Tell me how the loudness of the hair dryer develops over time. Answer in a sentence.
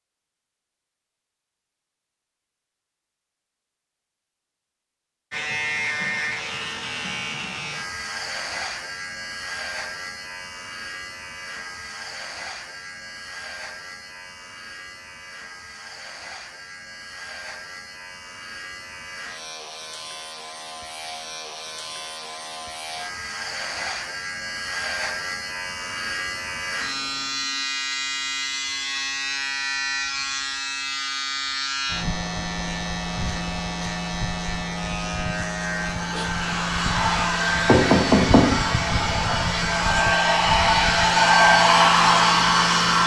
The loudness of the hair dryer goes up.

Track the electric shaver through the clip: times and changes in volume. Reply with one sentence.
The electric shaver can be heard from 5.3 to 43.0 s, getting quieter then louder.